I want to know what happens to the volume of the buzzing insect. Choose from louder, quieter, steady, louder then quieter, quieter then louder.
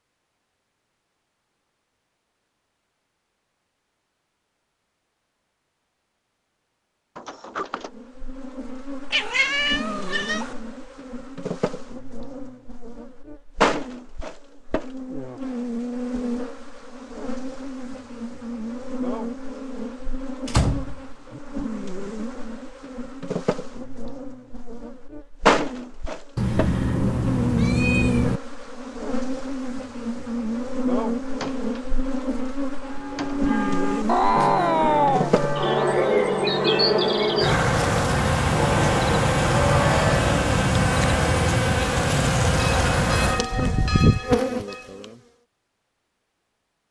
louder.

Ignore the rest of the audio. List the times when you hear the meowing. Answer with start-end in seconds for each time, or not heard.
9.1-10.6, 26.4-28.4, 34.0-35.4.